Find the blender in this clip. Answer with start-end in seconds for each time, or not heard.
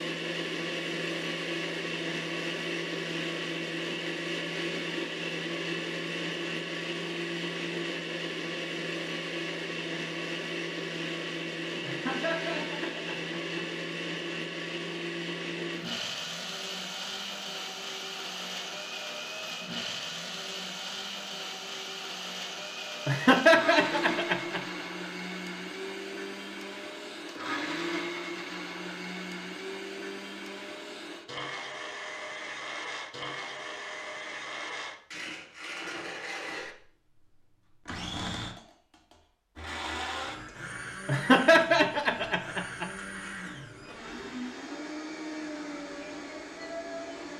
0.0-47.3.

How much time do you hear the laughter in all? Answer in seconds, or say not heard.
5 s.